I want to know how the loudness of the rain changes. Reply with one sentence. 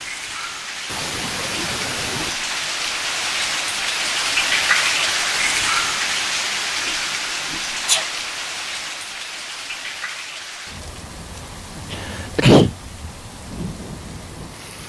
The loudness of the rain goes up, then down.